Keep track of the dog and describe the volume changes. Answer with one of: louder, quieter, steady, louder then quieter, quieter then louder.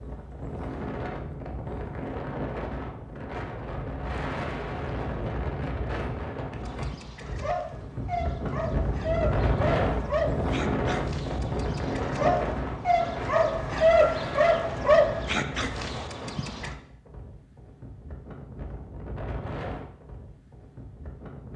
louder.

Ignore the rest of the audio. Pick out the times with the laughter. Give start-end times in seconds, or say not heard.
not heard.